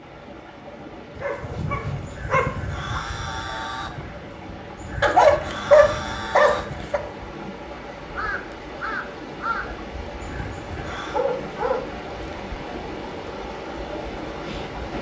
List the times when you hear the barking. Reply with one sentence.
You can hear the barking from 1.1 to 3.0 s, from 5.0 to 7.0 s and from 10.9 to 12.6 s.